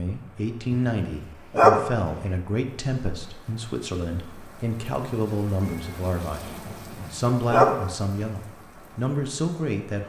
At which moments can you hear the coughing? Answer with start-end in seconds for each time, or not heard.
not heard.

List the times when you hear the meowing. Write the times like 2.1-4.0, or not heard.
5.6-7.2.